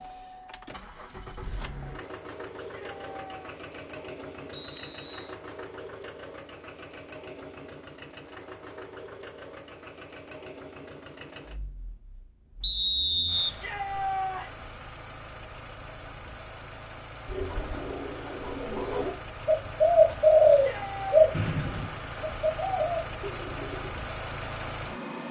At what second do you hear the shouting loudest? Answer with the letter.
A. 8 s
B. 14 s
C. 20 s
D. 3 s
B.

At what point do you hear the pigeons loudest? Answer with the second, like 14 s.
20 s.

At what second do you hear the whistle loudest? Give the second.
13 s.